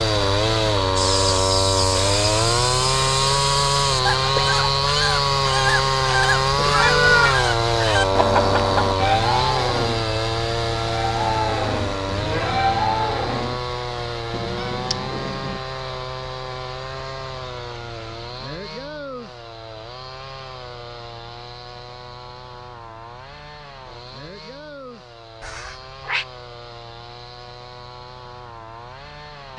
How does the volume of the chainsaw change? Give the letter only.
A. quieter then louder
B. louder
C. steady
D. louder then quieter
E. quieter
E.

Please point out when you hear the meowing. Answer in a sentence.
The meowing can be heard from 6.5 to 7.3 s, from 14.3 to 15.6 s and from 25.4 to 26.2 s.